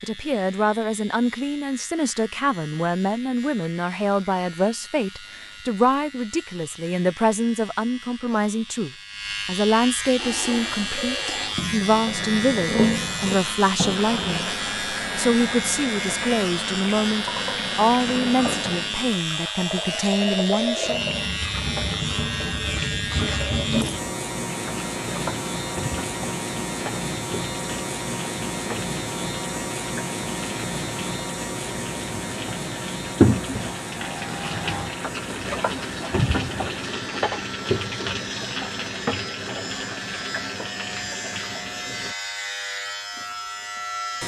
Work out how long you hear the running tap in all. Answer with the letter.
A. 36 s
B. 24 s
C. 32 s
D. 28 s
C.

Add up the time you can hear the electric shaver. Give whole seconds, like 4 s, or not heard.
44 s.